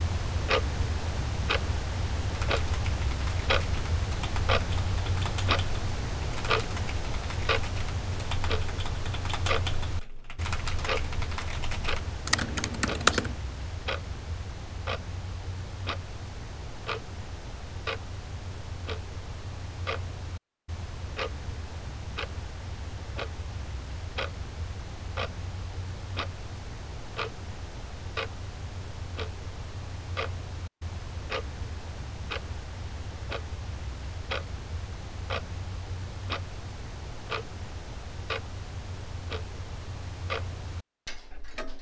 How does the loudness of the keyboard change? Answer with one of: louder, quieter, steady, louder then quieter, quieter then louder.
louder.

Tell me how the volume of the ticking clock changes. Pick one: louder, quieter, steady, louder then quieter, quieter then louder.
quieter.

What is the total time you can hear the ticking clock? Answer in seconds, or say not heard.
42 s.